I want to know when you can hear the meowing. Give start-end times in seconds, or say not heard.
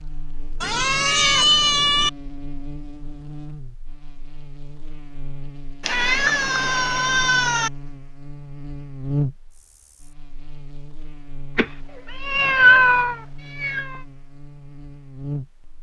0.6-2.1, 5.8-7.7, 11.6-14.0.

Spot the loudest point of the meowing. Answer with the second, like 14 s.
13 s.